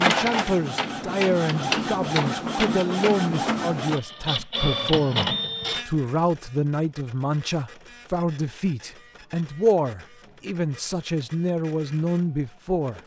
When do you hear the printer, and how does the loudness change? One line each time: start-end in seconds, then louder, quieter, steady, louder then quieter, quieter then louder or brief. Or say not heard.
0.0-13.0 quieter.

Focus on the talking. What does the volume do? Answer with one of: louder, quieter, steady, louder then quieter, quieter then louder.
steady.